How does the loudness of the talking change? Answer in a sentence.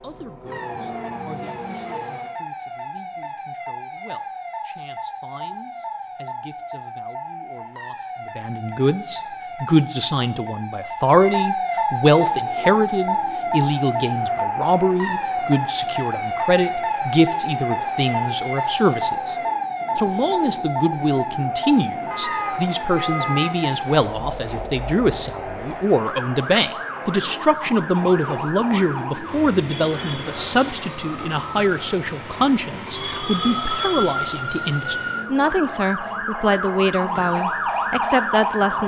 The volume of the talking goes up.